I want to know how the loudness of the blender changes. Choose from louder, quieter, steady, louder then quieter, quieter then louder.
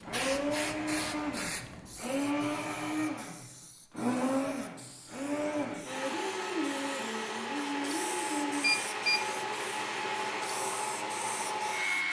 steady.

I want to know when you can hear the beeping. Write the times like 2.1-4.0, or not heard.
8.6-9.3.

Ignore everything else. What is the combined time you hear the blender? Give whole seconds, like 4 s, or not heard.
12 s.